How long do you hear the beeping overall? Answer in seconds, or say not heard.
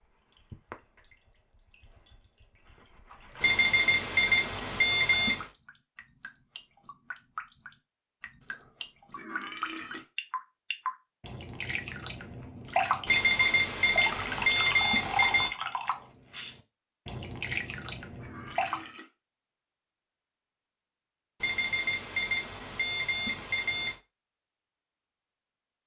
7 s.